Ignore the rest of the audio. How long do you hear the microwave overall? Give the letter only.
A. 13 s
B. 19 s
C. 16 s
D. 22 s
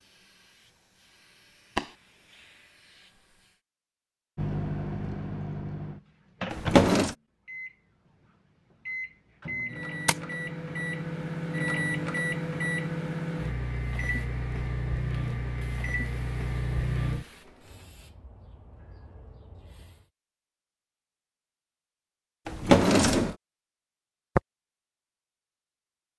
A.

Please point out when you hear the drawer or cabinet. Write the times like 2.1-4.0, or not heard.
6.5-7.2, 22.4-23.4.